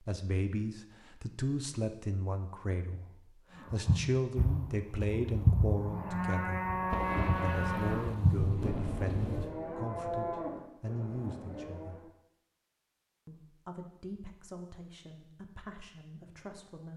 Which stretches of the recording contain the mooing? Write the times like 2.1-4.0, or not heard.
3.5-12.1.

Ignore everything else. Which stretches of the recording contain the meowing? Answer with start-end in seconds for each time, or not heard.
not heard.